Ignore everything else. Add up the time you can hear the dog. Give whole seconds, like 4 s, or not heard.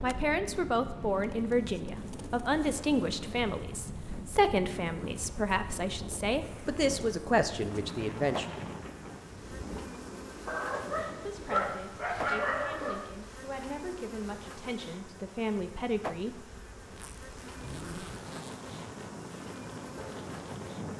3 s.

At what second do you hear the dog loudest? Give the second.
12 s.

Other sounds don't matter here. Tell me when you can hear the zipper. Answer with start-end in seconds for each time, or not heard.
16.9-19.1.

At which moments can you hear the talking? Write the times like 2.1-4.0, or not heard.
0.0-8.4, 11.2-16.4.